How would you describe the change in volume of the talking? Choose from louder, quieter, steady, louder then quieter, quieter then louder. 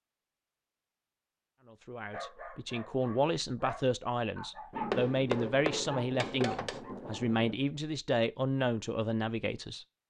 steady.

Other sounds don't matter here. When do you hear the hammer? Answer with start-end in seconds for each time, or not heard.
4.9-6.8.